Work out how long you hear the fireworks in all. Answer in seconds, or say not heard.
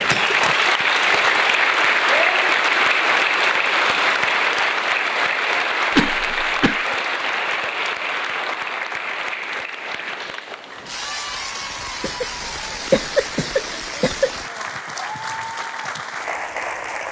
not heard.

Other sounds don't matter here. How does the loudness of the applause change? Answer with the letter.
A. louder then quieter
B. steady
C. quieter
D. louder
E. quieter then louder
C.